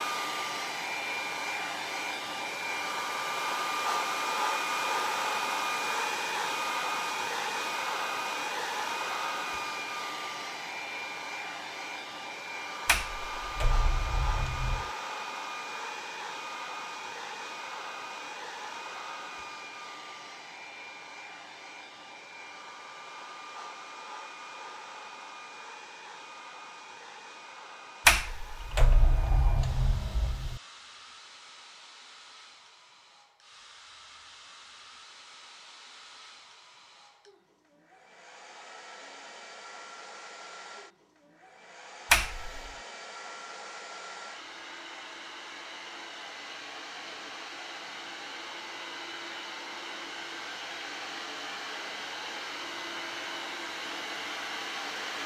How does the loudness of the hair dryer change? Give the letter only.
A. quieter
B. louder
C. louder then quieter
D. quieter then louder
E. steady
D.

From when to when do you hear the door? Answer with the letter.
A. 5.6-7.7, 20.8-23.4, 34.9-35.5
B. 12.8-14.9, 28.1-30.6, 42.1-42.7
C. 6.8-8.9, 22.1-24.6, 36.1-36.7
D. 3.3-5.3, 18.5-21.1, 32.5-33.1
B.